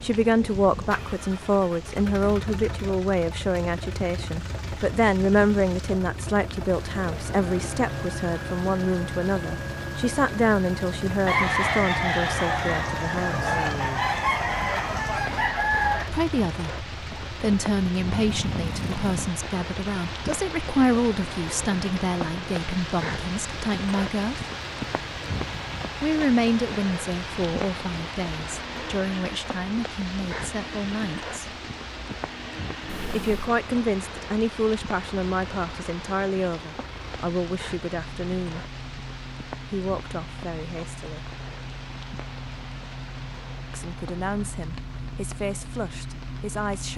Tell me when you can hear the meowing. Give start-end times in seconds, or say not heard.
18.1-19.3, 32.9-33.5.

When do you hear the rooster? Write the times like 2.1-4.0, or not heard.
11.2-16.1.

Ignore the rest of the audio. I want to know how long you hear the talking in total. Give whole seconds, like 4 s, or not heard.
38 s.